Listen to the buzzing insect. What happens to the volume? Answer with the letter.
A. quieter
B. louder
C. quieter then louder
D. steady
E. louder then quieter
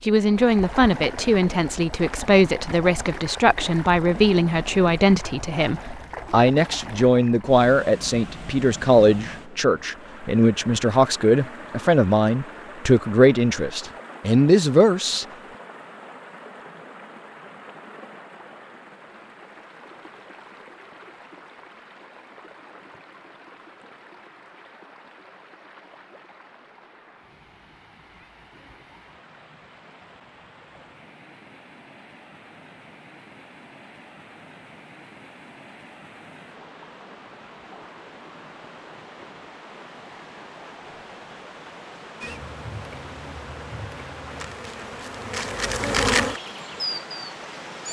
E.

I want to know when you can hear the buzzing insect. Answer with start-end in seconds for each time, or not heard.
42.2-47.8.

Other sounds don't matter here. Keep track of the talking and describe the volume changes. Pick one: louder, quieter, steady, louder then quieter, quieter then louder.
steady.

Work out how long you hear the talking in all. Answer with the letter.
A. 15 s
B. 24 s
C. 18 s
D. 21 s
A.